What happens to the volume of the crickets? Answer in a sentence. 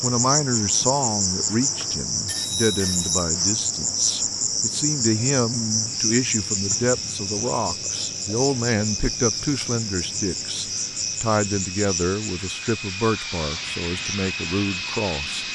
The loudness of the crickets goes down.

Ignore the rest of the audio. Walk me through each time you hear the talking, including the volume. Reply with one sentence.
The talking can be heard from 0.0 to 15.4 s, at a steady volume.